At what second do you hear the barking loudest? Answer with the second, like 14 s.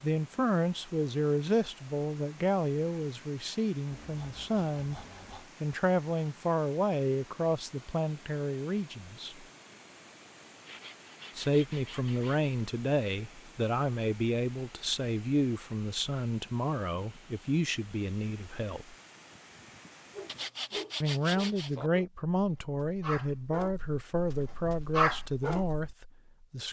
25 s.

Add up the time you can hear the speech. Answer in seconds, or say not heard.
23 s.